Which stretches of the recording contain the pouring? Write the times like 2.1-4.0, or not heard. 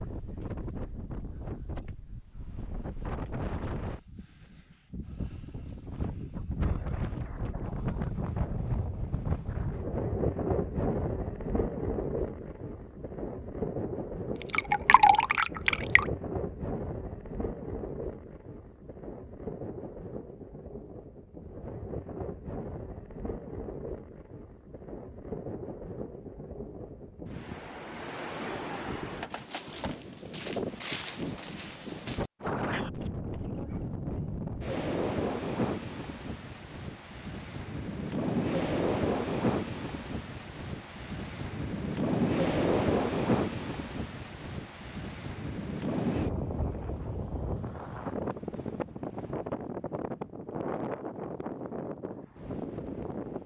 14.3-16.1.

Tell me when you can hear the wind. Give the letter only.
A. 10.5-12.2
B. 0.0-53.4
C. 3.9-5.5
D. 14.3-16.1
B.